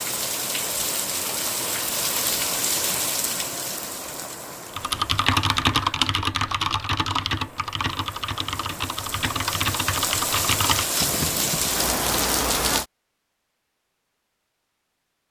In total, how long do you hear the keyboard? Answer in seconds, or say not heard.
7 s.